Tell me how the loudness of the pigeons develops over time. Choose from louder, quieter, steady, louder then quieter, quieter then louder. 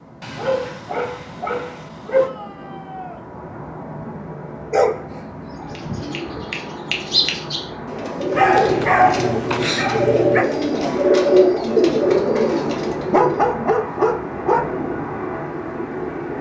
louder.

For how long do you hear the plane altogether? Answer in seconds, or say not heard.
16 s.